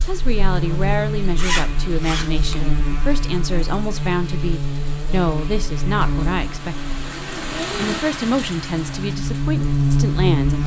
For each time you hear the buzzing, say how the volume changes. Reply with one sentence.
The buzzing can be heard from 0.0 to 10.6 s, getting quieter then louder.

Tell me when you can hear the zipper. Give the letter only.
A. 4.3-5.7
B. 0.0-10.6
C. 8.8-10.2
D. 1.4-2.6
D.